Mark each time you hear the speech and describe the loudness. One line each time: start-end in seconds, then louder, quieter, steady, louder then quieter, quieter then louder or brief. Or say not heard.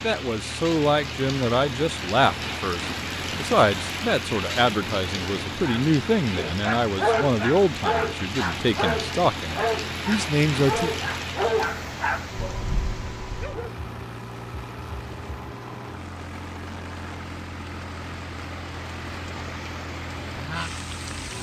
0.0-10.9 steady.